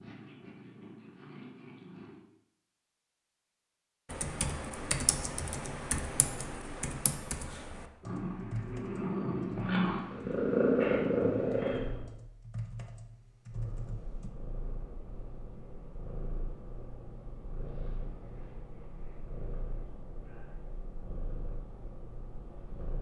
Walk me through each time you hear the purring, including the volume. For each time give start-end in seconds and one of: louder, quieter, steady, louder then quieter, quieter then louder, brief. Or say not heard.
0.0-2.2 brief
8.0-12.1 louder
13.5-22.9 steady.